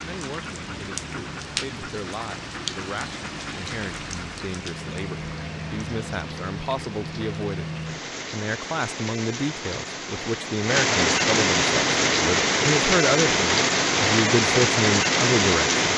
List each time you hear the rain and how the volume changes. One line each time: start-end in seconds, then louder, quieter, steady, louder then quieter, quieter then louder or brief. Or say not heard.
0.0-15.9 louder.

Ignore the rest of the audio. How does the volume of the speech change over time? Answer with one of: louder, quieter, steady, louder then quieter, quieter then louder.
louder.